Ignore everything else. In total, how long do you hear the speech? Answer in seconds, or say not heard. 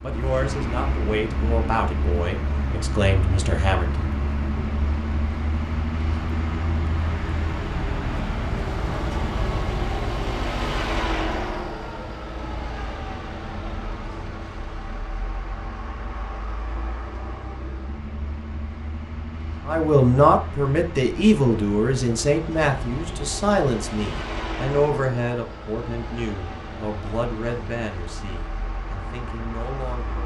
15 s.